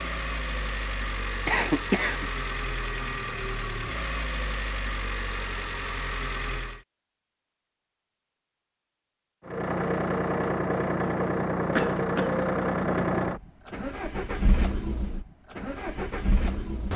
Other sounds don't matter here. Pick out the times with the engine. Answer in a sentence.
The engine can be heard from 0.0 to 6.8 s and from 9.4 to 16.9 s.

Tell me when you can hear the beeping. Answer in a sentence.
You can't hear the beeping here.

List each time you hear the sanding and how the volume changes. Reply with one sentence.
You can't hear the sanding here.